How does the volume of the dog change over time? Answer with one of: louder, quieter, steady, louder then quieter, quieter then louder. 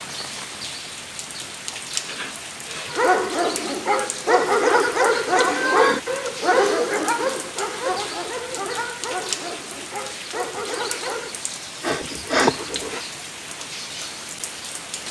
quieter.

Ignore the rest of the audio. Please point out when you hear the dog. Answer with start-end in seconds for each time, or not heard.
2.9-11.4.